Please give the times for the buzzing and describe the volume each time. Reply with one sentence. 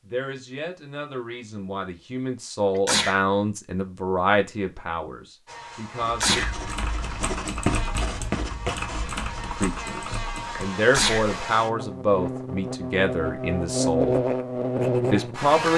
You can hear the buzzing from 5.5 to 15.7 s, getting louder.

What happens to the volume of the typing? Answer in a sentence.
The loudness of the typing stays about the same.